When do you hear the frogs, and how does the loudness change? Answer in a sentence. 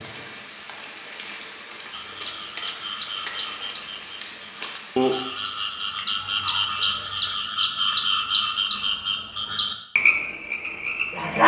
The frogs can be heard from 1.9 to 11.4 s, getting louder.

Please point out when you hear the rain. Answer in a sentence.
You can hear the rain from 0.0 to 7.4 s.